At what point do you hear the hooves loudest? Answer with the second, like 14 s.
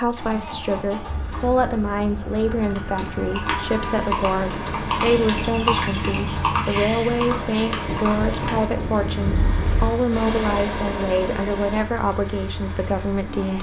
6 s.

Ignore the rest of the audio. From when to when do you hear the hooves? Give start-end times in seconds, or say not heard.
2.7-8.7.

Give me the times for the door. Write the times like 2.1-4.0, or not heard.
not heard.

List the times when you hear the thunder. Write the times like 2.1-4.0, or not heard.
7.8-9.9.